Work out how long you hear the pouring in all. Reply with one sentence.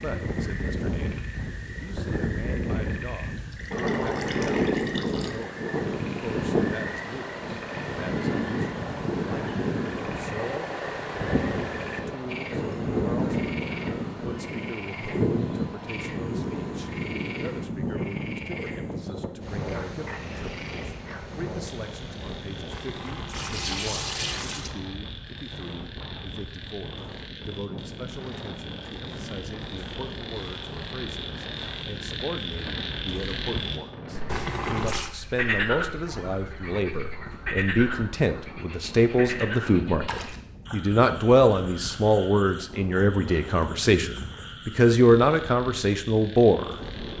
The pouring can be heard for 5 seconds in total.